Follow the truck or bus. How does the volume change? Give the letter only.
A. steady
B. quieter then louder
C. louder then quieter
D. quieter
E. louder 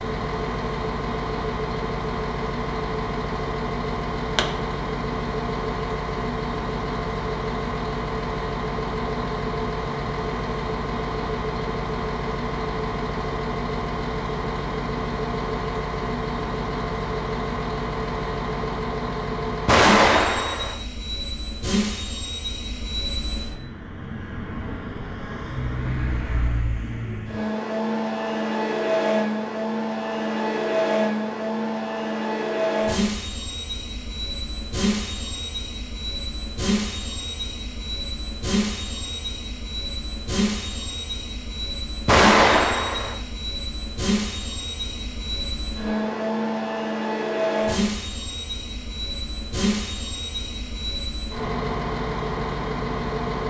A.